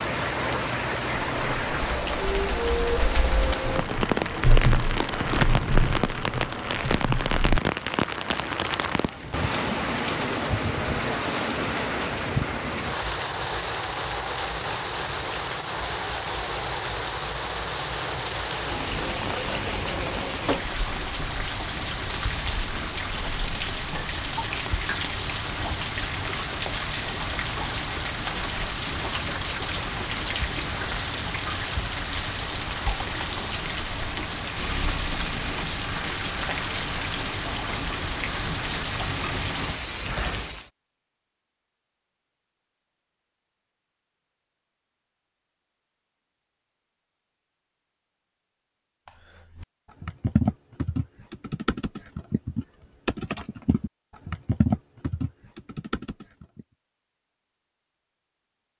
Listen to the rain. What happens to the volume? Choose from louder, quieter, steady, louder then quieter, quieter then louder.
steady.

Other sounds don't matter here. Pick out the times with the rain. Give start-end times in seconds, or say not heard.
0.0-40.7.